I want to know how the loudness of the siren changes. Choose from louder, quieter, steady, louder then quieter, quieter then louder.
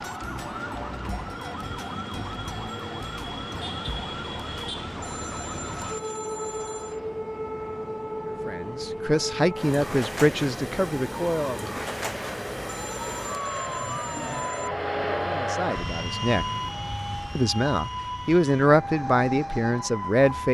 steady.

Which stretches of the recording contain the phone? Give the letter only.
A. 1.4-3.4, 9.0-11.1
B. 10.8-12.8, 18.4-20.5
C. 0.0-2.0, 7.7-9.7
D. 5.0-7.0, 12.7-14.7
D.